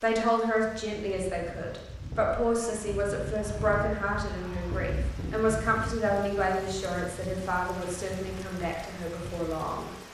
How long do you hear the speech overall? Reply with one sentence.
The speech can be heard for 10 seconds in total.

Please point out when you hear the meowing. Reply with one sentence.
The meowing can't be heard in this clip.